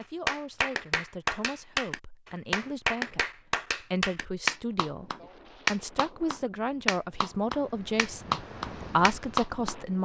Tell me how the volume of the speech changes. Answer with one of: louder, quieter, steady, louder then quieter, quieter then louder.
louder.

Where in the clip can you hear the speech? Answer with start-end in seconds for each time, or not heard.
0.0-10.0.